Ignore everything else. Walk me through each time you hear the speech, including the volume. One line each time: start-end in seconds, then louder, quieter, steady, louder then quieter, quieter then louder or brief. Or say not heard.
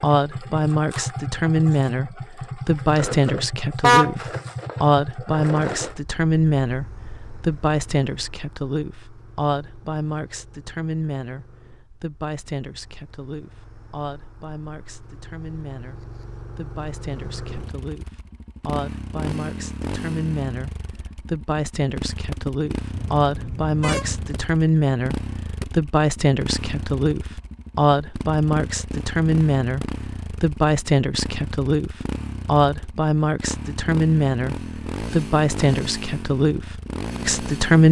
0.0-37.8 quieter then louder.